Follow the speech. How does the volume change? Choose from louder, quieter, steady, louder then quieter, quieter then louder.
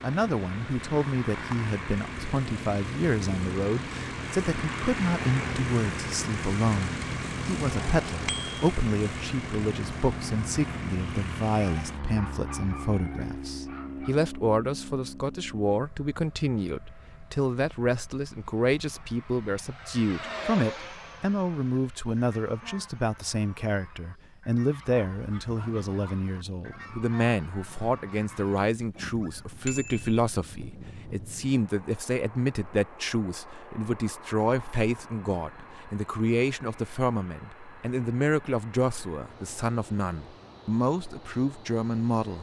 steady.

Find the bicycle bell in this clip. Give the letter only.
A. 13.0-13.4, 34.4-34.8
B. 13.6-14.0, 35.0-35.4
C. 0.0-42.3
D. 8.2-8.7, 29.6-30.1
D.